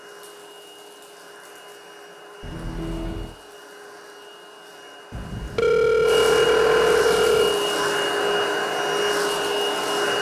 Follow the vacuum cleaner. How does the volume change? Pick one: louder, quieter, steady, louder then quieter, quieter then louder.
louder.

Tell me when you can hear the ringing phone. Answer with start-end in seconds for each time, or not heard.
2.4-3.4, 5.1-7.5.